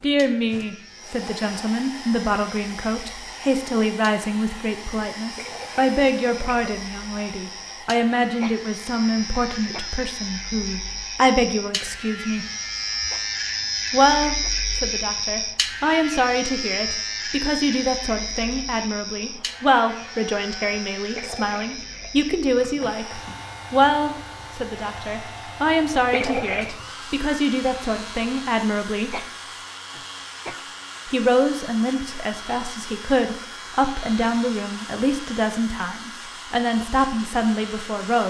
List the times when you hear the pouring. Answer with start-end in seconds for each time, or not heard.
5.3-6.6, 21.1-22.2, 26.1-26.8.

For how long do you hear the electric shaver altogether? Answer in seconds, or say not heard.
38 s.